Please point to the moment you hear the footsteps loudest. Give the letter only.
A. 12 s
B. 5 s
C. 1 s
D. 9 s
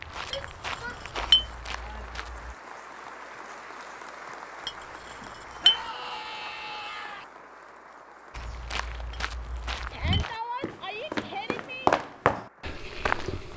A.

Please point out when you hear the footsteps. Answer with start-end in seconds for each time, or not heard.
0.0-2.5, 8.3-13.5.